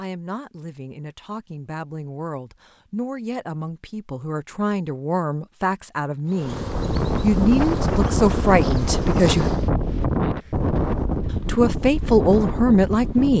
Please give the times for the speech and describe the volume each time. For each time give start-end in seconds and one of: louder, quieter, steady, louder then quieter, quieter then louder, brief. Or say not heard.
0.0-6.6 louder
7.2-9.5 brief
11.4-13.3 brief.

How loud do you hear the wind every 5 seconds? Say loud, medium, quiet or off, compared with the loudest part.
off, loud, loud.